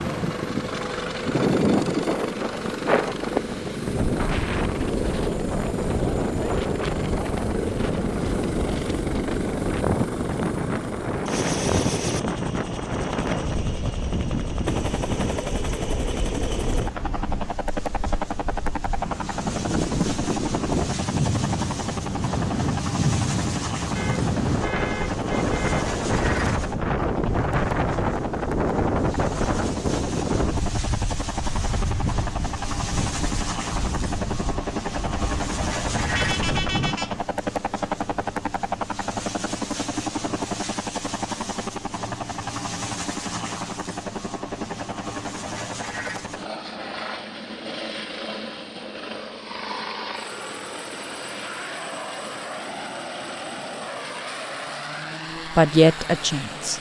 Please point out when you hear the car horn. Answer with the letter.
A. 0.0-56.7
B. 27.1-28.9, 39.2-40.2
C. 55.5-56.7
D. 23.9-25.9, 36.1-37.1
D.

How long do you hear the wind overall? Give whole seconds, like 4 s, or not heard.
37 s.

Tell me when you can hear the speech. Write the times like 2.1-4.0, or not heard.
55.5-56.7.